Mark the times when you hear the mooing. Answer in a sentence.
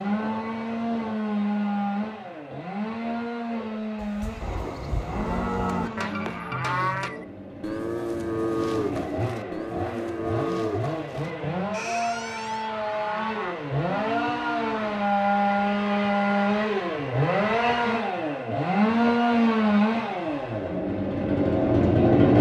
The mooing can be heard from 3.5 to 15.2 s.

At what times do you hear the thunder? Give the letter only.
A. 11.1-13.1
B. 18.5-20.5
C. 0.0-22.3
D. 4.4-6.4
D.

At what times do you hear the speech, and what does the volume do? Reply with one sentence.
The speech can't be heard in this clip.